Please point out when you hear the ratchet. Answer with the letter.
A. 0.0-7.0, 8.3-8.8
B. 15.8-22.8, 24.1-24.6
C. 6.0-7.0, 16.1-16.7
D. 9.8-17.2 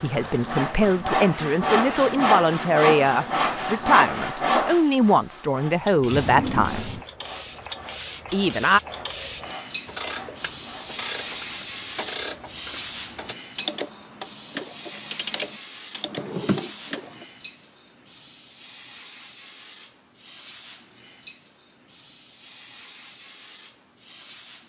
D.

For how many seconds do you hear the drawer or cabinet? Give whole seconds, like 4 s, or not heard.
2 s.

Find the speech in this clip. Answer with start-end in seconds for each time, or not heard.
0.0-7.0, 8.3-8.8.